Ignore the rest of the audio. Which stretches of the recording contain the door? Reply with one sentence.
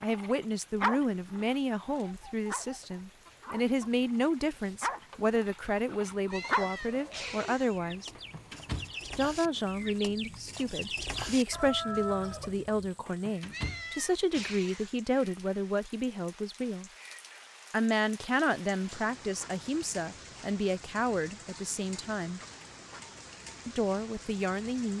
You can hear the door from 8.2 to 10.0 s and from 13.1 to 14.5 s.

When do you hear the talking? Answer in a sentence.
The talking can be heard from 0.0 to 8.1 s, from 9.2 to 16.9 s, from 17.7 to 22.4 s and from 23.6 to 24.9 s.